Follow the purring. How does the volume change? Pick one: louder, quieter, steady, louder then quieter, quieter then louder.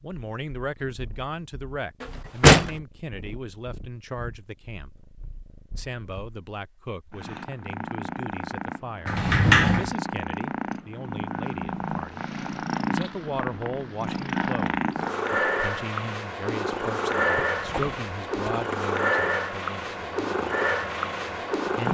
louder.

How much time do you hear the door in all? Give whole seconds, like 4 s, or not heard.
3 s.